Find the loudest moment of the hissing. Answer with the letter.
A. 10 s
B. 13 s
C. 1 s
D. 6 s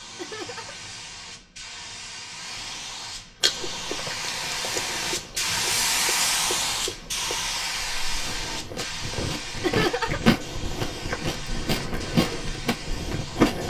D.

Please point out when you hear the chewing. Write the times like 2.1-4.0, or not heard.
3.4-13.6.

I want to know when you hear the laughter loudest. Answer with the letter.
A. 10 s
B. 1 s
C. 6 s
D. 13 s
A.